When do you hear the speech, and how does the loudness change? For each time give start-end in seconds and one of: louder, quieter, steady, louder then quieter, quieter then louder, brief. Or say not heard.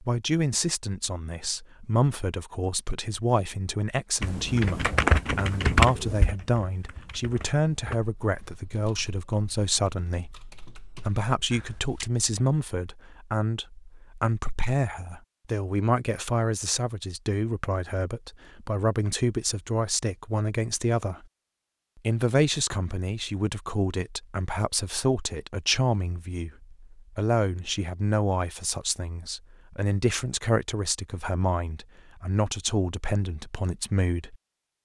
0.0-21.2 steady
22.1-34.4 steady.